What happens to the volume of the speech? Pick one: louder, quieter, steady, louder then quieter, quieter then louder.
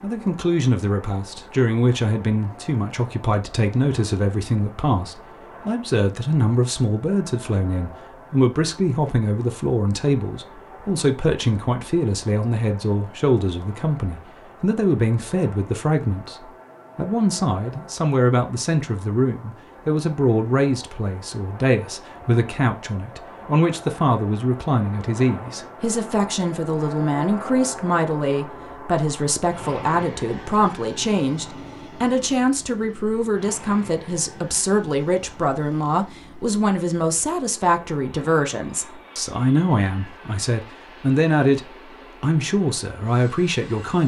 steady.